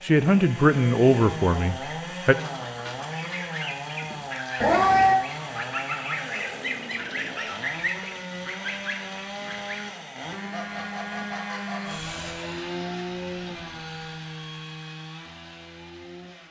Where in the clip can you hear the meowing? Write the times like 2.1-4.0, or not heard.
4.6-5.2.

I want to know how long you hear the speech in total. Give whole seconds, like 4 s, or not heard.
2 s.